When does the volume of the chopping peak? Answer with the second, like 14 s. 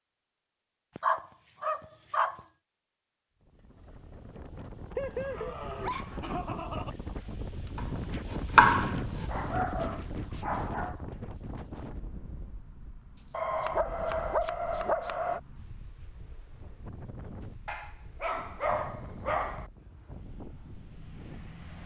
9 s.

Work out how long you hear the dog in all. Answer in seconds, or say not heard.
9 s.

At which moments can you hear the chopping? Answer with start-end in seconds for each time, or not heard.
7.8-9.2, 13.2-15.2.